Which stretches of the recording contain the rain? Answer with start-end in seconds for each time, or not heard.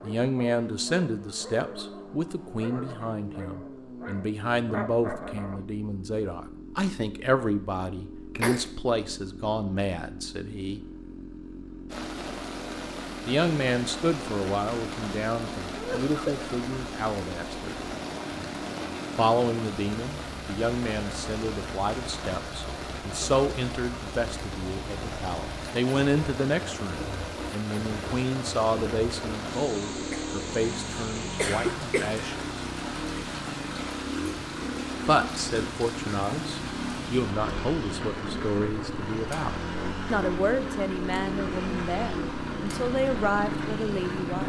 11.8-44.4.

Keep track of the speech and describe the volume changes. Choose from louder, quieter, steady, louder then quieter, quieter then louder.
steady.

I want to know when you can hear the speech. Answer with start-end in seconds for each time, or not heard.
0.0-10.8, 13.2-17.8, 19.1-32.6, 35.0-44.4.